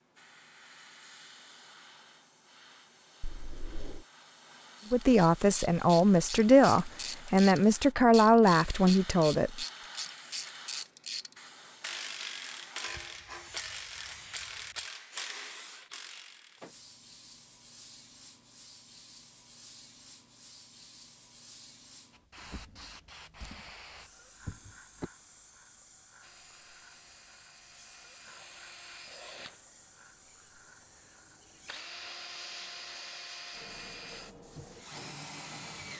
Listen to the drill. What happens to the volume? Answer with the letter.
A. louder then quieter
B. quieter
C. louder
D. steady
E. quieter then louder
C.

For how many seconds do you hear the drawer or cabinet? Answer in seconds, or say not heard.
3 s.